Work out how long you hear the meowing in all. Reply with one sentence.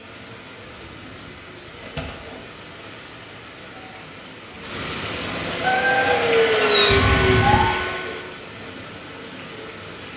The meowing can be heard for 2 seconds in total.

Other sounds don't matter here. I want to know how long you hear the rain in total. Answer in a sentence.
The rain can be heard for 10 seconds in total.